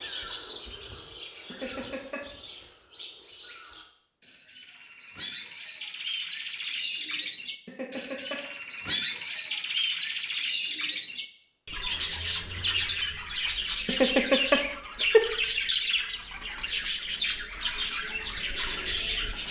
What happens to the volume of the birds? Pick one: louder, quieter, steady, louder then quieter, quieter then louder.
louder.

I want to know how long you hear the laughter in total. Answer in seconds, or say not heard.
3 s.